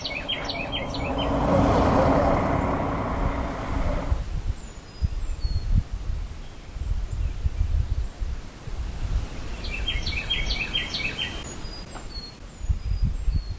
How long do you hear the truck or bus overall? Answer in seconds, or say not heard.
4 s.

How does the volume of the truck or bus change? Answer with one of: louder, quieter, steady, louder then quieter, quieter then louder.
louder then quieter.